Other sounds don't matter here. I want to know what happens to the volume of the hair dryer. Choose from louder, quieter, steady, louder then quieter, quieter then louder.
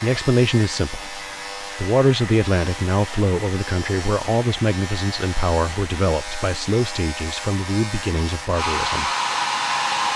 louder.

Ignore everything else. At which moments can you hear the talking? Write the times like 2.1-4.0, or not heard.
0.0-9.1.